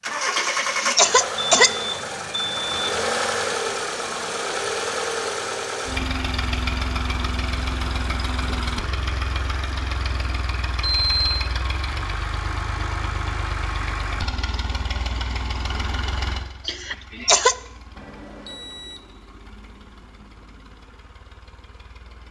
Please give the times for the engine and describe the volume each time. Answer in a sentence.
The engine can be heard from 0.0 to 22.2 s, getting quieter.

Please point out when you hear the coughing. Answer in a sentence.
You can hear the coughing from 0.3 to 1.7 s and from 16.6 to 17.6 s.